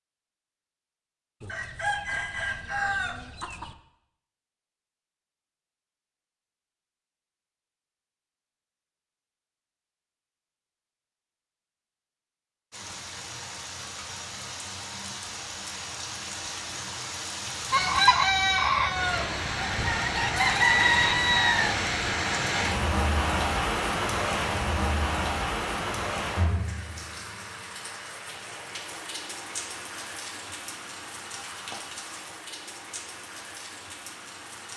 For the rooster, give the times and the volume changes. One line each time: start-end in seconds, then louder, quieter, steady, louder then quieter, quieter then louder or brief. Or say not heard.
1.4-3.8 brief
17.7-21.8 quieter then louder.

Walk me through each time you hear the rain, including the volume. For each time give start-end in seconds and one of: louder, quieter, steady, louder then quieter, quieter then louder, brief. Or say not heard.
12.7-34.7 louder then quieter.